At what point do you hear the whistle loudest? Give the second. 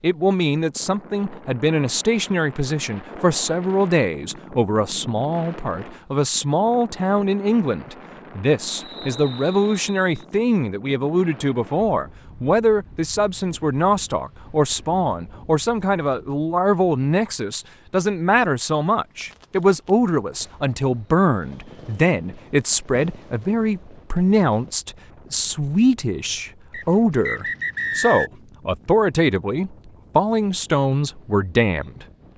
28 s.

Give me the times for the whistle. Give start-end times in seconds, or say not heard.
8.8-10.2, 26.7-28.3.